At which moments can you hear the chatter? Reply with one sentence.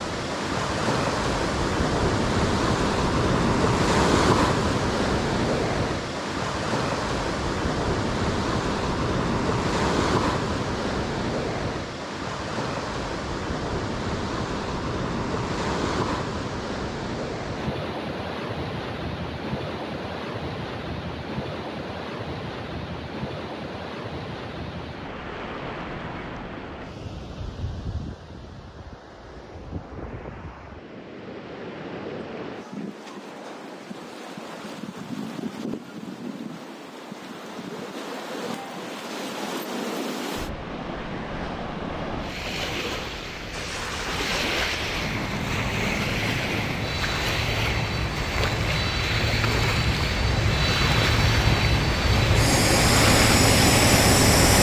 The chatter can't be heard in this clip.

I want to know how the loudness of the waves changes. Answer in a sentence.
The loudness of the waves goes down, then up.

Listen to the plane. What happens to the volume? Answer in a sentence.
The loudness of the plane goes up.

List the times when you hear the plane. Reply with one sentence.
You can hear the plane from 43.5 to 54.5 s.